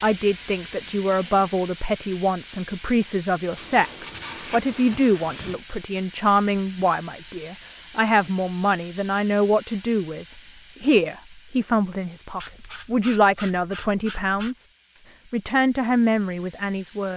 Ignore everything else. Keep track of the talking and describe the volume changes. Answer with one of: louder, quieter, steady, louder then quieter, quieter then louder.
steady.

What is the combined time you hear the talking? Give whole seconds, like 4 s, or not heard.
17 s.